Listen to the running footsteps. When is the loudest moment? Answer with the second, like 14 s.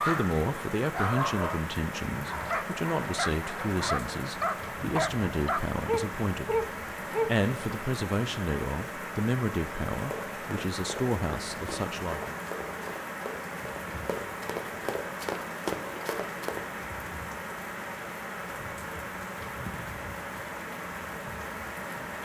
16 s.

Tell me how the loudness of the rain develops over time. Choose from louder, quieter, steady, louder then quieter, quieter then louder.
steady.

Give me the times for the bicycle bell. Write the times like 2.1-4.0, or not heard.
not heard.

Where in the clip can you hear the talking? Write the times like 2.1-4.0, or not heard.
0.0-12.3.